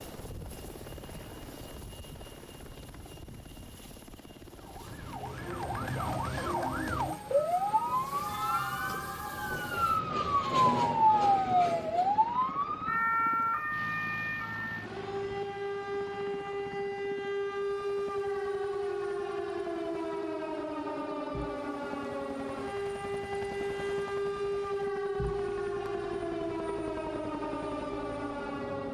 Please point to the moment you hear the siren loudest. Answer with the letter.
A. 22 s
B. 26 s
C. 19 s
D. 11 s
D.